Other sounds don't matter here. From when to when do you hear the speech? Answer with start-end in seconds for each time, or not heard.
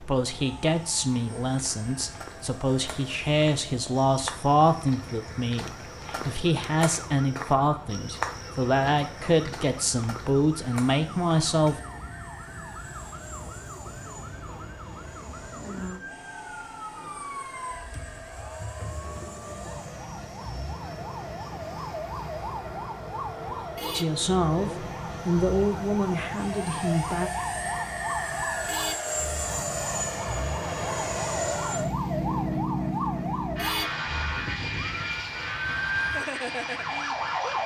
0.0-11.8, 23.9-27.3.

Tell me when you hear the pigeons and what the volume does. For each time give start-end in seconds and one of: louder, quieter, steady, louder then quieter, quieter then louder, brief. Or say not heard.
not heard.